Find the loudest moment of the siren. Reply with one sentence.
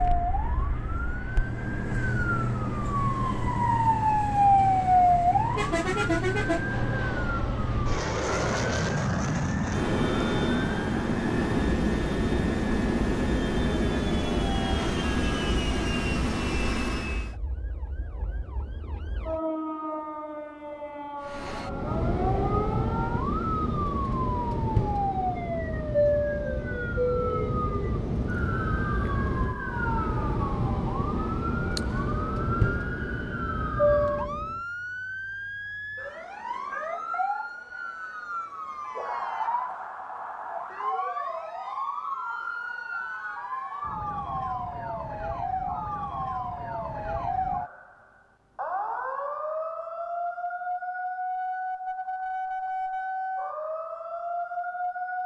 The volume of the siren peaks at 5 seconds.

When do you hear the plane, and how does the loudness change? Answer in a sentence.
The plane can be heard from 0.0 to 17.4 s, getting louder; and from 21.2 to 34.6 s, at a steady volume.